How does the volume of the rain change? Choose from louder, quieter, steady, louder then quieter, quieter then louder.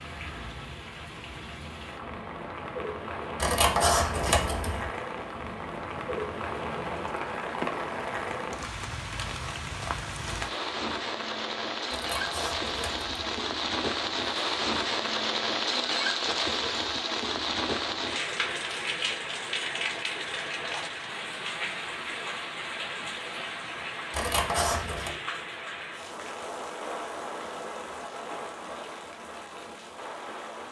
louder then quieter.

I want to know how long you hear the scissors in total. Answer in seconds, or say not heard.
4 s.